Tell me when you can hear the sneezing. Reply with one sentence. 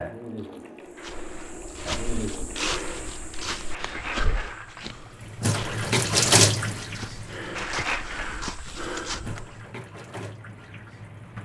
The sneezing can't be heard in this clip.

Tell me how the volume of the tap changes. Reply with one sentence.
The volume of the tap goes up, then down.